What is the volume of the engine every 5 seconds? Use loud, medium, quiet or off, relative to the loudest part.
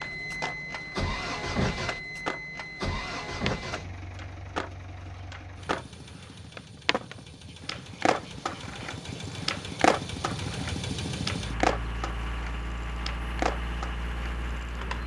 loud, medium, loud.